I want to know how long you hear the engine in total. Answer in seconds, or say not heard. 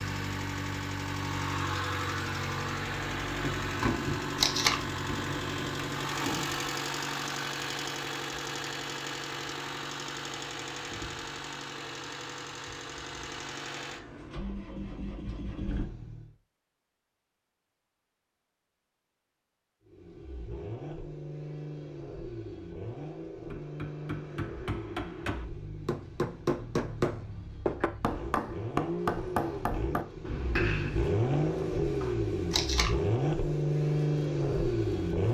32 s.